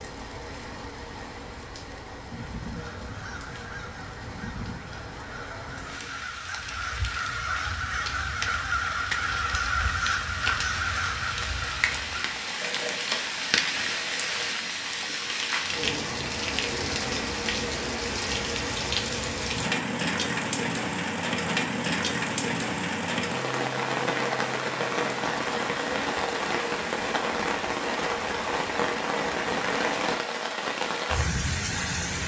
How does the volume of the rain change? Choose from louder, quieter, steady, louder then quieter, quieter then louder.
louder.